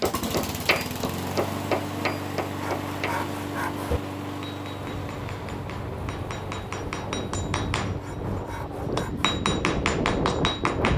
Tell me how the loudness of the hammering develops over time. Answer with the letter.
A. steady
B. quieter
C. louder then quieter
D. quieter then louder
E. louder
D.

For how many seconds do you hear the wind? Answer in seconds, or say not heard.
6 s.